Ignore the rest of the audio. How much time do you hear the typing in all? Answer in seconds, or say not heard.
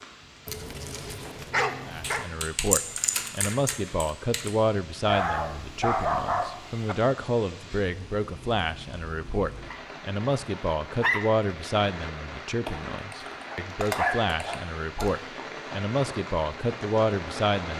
5 s.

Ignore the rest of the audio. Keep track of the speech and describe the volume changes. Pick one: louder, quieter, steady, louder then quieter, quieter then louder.
steady.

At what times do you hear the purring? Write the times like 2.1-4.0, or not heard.
not heard.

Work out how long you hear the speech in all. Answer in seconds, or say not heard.
16 s.